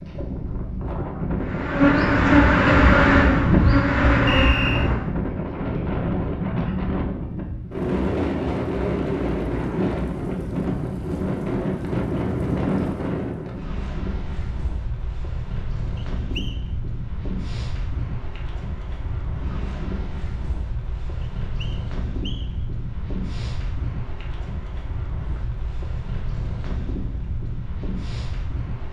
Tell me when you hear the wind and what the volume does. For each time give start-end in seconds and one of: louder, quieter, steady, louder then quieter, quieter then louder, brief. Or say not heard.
0.0-28.8 quieter.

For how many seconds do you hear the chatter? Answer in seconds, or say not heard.
not heard.